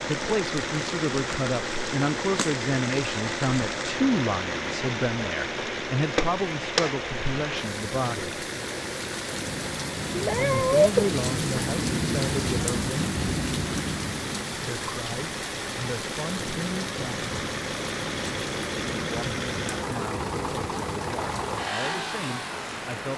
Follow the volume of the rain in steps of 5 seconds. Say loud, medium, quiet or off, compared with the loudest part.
medium, medium, loud, medium, medium.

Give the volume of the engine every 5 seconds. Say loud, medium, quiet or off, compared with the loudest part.
loud, loud, medium, loud, loud.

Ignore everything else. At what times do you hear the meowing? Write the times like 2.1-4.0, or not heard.
10.1-11.1.